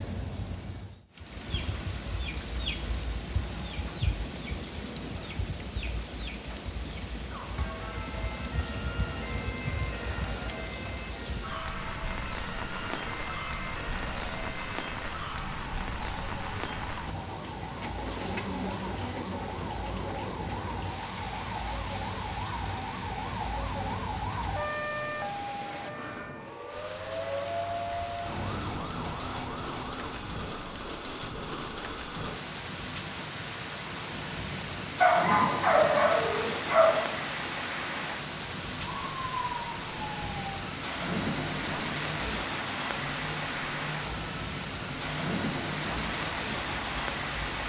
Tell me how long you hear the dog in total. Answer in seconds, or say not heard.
2 s.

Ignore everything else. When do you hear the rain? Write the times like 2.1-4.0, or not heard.
0.0-47.6.